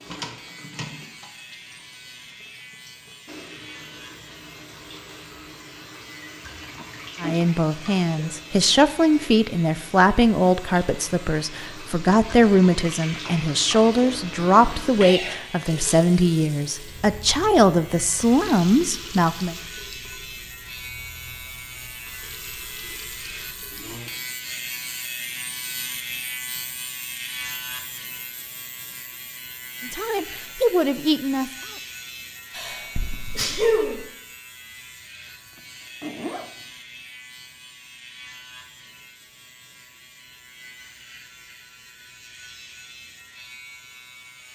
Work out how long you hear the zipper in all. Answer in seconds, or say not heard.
2 s.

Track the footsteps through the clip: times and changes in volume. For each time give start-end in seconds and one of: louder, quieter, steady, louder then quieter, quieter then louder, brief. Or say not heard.
not heard.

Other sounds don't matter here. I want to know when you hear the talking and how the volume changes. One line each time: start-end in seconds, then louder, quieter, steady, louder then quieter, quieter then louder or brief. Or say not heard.
7.2-19.6 steady
29.8-31.8 brief.